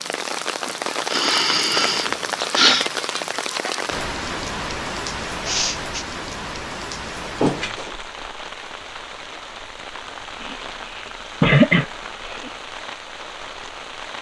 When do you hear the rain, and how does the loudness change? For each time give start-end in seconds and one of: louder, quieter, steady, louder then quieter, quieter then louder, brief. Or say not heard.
0.0-14.1 quieter.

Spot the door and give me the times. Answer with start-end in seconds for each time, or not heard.
7.2-8.0.